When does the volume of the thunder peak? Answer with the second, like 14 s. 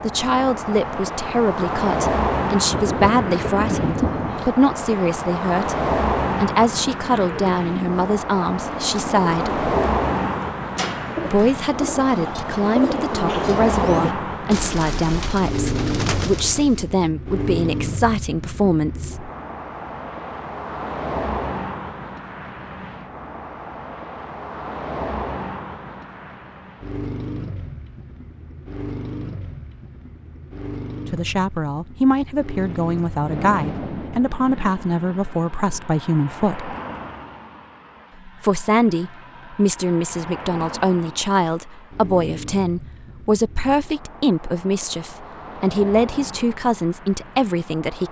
4 s.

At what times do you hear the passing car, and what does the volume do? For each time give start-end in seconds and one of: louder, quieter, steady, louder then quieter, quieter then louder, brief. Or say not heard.
0.0-48.0 quieter.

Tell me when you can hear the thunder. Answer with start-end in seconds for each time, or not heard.
2.6-4.5, 32.5-37.2.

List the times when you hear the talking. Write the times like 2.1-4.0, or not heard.
0.0-9.6, 11.2-19.3, 31.1-36.8, 38.2-48.0.